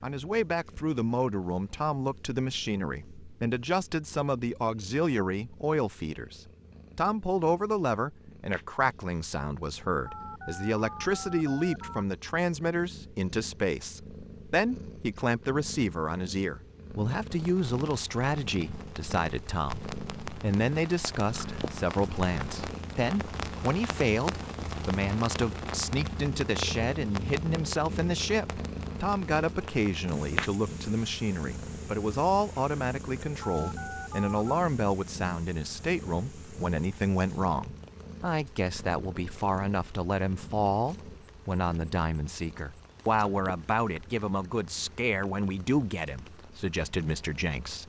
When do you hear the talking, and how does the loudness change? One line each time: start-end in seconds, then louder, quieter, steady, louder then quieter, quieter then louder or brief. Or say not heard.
0.0-47.8 steady.